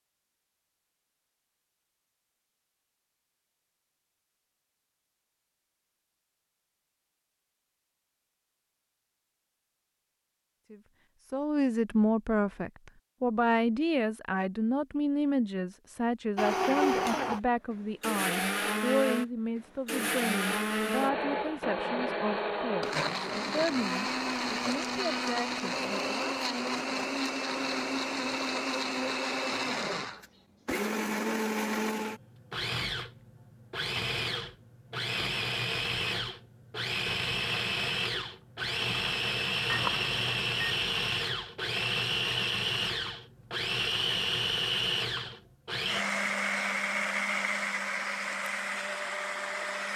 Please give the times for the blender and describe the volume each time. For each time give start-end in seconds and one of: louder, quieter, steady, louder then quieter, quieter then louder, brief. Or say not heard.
16.4-49.9 steady.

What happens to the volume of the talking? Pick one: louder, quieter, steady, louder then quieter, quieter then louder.
quieter.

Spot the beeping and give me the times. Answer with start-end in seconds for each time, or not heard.
39.6-40.8.